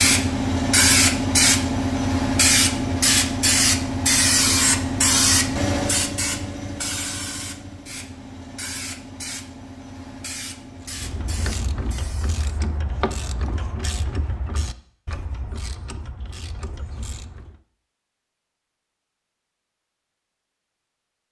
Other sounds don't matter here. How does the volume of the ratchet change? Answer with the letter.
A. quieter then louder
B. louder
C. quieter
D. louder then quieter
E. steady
C.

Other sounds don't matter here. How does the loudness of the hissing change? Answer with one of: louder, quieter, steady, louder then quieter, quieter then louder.
quieter.